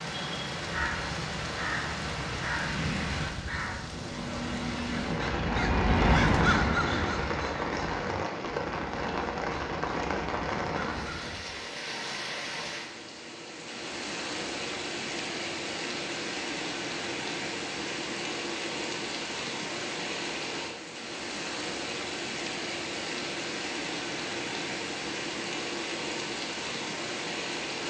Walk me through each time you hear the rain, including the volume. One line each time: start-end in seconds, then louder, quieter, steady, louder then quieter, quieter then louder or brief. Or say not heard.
0.0-27.8 steady.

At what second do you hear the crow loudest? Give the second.
6 s.